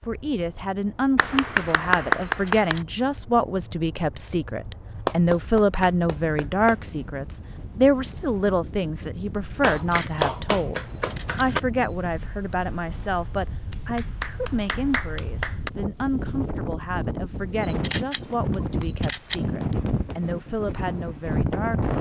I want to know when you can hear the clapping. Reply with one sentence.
The clapping can be heard from 1.1 to 2.9 s, from 5.0 to 6.8 s, from 9.6 to 11.6 s, from 13.7 to 15.7 s and from 18.5 to 20.1 s.